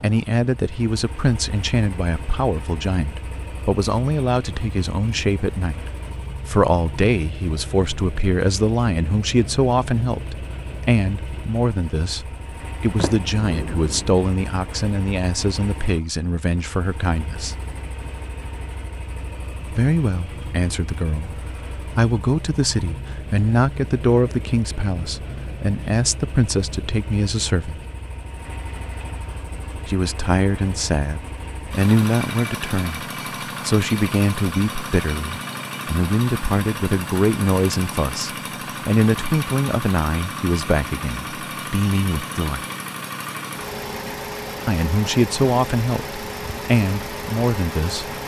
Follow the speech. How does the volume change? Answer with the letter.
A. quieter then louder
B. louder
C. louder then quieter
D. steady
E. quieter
D.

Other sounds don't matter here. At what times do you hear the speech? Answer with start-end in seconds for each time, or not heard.
0.0-17.6, 19.7-27.8, 29.9-33.0, 33.6-42.6, 44.6-48.0.